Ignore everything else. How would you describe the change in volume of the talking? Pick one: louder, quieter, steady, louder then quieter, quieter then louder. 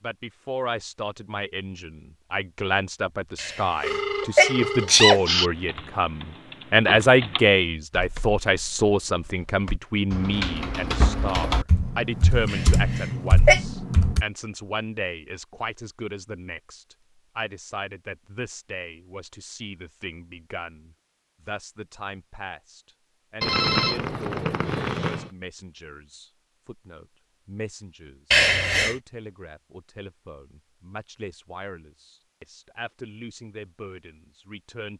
quieter.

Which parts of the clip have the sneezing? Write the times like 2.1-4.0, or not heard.
3.4-5.2, 12.4-13.6, 28.3-28.9.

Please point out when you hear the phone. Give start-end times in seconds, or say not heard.
3.8-5.5, 23.4-25.3.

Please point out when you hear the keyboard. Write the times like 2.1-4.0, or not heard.
4.8-14.2.